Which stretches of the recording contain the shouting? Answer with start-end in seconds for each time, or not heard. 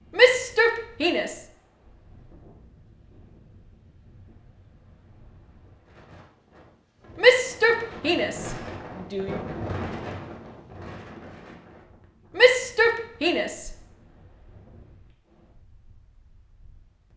0.1-1.4, 7.2-9.4, 12.3-13.7.